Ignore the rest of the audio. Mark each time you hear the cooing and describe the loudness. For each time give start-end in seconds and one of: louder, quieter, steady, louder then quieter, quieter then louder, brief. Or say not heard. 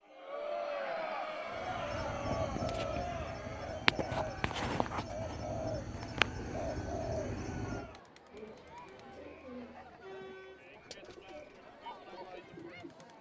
1.5-13.1 quieter.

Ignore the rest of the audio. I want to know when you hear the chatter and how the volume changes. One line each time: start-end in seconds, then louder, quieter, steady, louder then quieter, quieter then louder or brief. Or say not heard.
0.1-13.1 quieter.